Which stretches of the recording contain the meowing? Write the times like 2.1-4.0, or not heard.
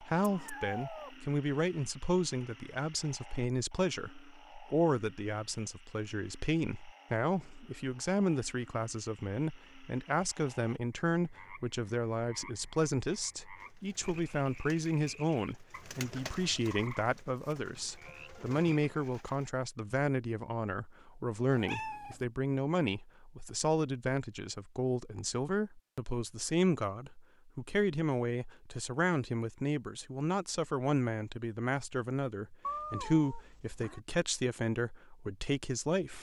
0.2-1.1, 21.5-22.2, 32.6-34.0.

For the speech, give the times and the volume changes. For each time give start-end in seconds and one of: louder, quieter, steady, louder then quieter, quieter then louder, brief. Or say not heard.
0.0-36.1 steady.